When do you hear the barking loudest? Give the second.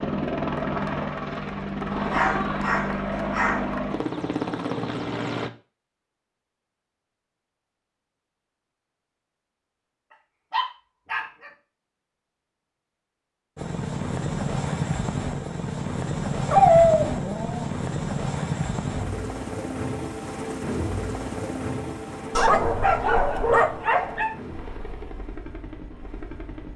17 s.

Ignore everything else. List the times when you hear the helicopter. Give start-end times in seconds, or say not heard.
0.0-5.5, 13.6-26.7.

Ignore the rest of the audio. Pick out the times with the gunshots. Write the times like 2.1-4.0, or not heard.
not heard.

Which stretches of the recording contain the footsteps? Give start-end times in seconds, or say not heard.
not heard.